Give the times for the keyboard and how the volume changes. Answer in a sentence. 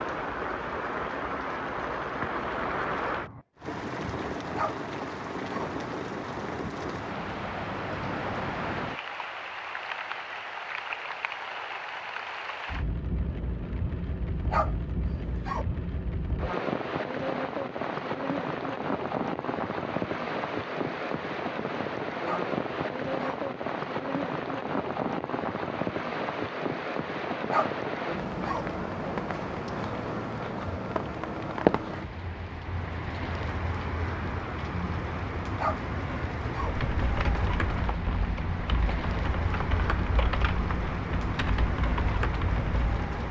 You can hear the keyboard from 36.7 to 43.2 s, at a steady volume.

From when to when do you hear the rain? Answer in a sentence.
The rain can be heard from 0.0 to 43.2 s.